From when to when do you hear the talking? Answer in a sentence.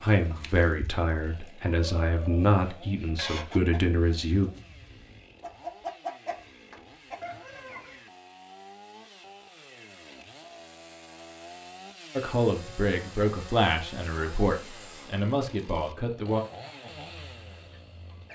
The talking can be heard from 0.0 to 4.5 s and from 12.2 to 16.4 s.